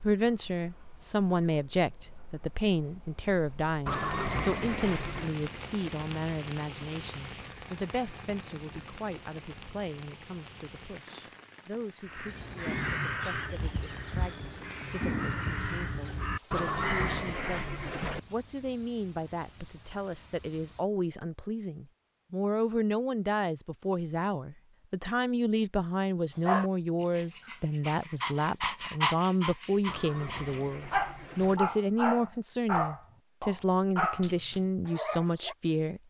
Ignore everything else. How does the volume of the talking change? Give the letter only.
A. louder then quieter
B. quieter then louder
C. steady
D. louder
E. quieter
B.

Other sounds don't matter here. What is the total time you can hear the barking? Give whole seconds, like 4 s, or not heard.
9 s.